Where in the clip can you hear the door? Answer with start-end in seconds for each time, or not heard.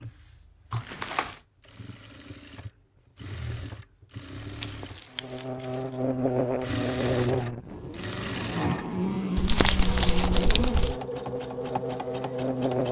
not heard.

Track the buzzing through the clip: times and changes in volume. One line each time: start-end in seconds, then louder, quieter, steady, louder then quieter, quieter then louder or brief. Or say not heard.
5.2-12.8 quieter.